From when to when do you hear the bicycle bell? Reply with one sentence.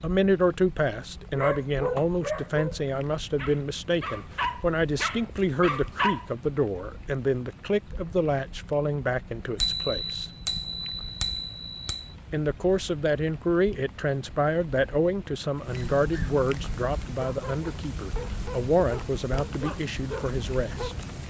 You can hear the bicycle bell from 9.6 to 12.1 s.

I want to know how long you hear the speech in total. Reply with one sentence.
The speech can be heard for 19 seconds in total.